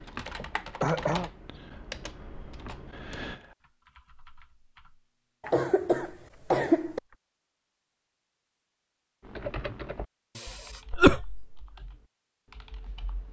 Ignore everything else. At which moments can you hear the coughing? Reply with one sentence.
You can hear the coughing from 0.3 to 1.3 s, from 5.4 to 7.0 s and from 10.3 to 11.6 s.